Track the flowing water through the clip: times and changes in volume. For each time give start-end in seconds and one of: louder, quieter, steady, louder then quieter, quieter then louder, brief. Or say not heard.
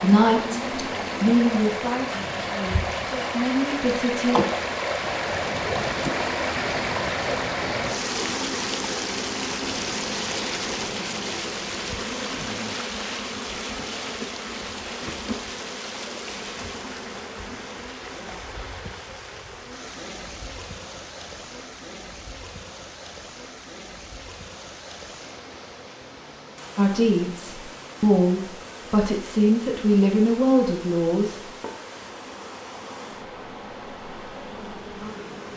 0.0-35.5 quieter.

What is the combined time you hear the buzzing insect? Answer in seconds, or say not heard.
35 s.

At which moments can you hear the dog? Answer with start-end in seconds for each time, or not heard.
not heard.